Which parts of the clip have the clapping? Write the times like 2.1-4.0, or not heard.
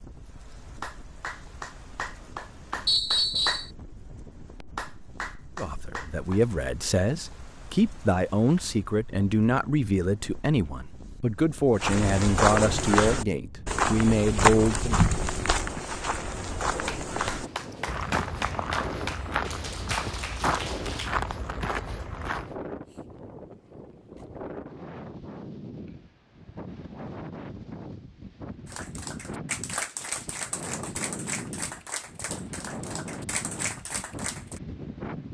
0.6-6.4, 16.6-21.1, 28.6-34.6.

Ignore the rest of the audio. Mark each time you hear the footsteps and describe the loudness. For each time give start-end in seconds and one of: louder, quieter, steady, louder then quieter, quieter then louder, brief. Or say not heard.
11.8-22.6 quieter.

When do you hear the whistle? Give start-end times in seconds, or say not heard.
2.9-3.7.